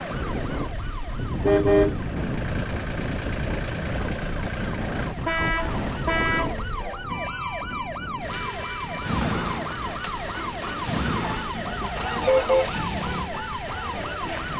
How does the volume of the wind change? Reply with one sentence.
The volume of the wind goes down.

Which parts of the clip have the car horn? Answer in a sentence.
You can hear the car horn from 1.4 to 2.0 s, from 5.2 to 6.5 s and from 11.7 to 12.7 s.